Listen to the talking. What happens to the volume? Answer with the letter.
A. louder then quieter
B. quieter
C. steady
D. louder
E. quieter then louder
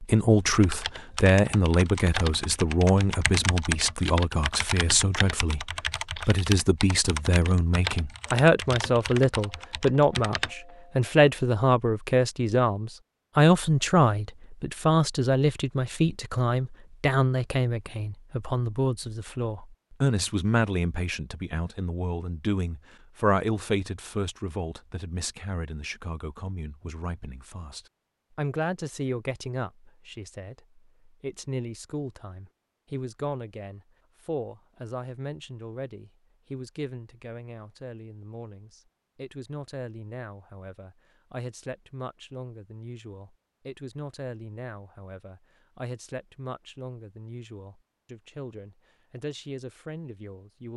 B.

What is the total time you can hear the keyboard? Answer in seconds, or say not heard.
11 s.